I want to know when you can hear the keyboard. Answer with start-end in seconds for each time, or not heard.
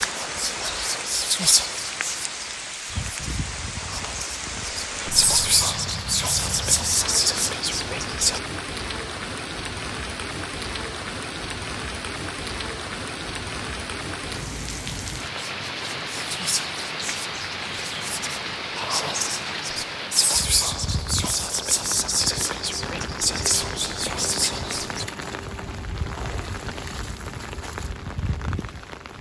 not heard.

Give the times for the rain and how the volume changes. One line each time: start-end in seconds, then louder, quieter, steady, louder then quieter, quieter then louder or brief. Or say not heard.
0.0-29.1 steady.